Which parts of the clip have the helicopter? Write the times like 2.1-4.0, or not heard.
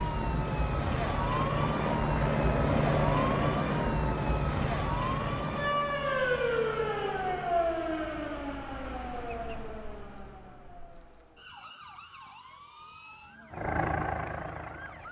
0.0-7.7, 13.5-15.0.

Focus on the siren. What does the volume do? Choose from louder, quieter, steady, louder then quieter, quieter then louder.
quieter.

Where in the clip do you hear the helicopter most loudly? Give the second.
3 s.